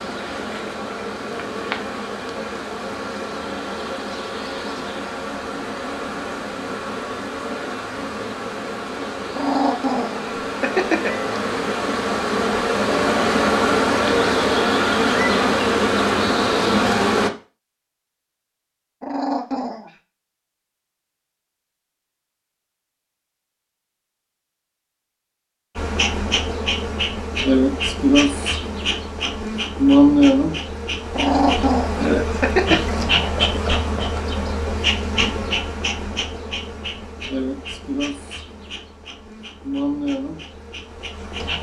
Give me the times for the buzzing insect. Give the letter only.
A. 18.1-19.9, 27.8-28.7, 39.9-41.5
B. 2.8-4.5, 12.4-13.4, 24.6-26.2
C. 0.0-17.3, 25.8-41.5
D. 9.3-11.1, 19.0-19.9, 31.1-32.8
C.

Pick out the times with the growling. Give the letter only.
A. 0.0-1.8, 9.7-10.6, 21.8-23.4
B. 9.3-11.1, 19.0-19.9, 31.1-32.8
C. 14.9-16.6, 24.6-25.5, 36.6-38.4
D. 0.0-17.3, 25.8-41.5
B.